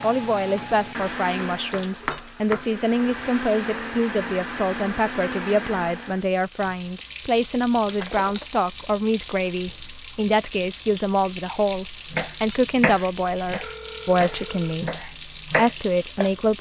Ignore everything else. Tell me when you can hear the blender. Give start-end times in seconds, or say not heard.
0.0-6.3.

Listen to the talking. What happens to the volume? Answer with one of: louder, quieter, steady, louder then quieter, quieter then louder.
steady.